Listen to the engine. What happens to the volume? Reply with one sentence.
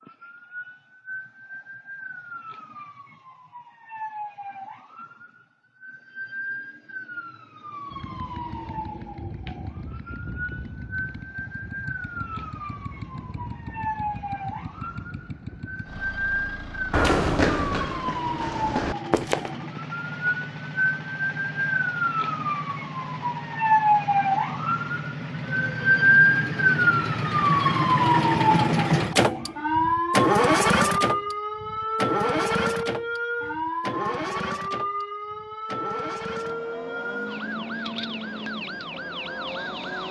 The volume of the engine goes up, then down.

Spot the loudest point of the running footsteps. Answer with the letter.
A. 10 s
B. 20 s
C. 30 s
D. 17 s
D.